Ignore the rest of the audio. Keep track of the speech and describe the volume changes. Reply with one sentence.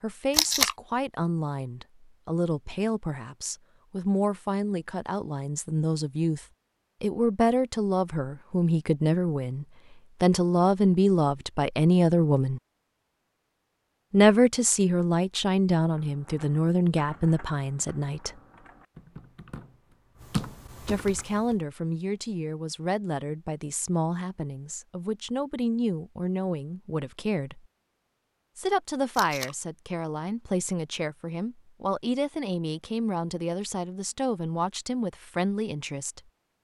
The loudness of the speech goes up, then down.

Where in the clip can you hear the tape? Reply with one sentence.
You can hear the tape from 0.3 to 0.8 s and from 29.1 to 29.6 s.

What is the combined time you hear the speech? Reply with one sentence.
The speech can be heard for 31 seconds in total.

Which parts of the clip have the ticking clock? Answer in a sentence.
You can't hear the ticking clock here.